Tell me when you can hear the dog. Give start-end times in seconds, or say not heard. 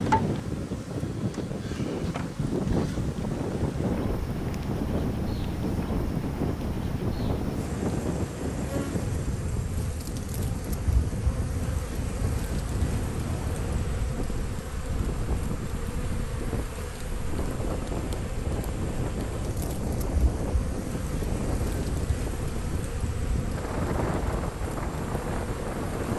not heard.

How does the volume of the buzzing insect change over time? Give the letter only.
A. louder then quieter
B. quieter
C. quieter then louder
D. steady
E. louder
D.